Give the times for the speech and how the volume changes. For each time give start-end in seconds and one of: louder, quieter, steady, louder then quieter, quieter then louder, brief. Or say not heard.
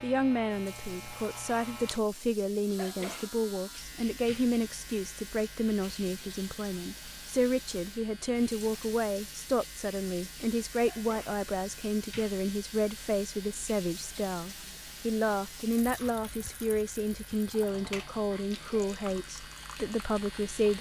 0.0-20.7 steady.